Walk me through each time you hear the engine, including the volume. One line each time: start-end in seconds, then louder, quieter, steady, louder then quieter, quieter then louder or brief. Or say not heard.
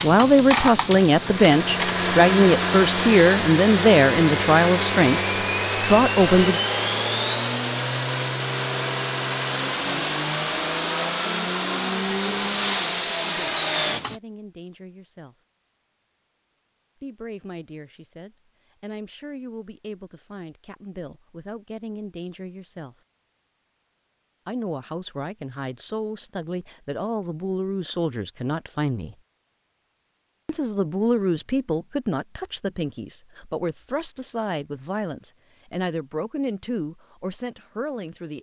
0.0-14.2 steady.